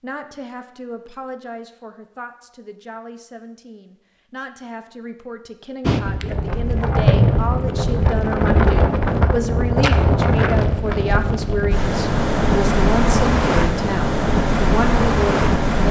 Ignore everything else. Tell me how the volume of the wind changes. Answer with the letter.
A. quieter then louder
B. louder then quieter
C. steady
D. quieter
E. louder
C.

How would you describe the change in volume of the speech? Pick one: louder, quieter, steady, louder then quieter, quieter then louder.
louder.